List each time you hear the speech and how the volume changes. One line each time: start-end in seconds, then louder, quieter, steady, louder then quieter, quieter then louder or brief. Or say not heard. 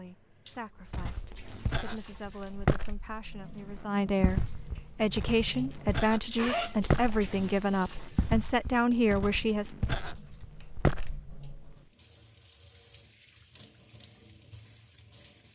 0.0-9.8 louder.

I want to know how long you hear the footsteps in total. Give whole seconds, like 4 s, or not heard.
11 s.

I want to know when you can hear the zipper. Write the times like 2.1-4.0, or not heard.
6.3-7.3.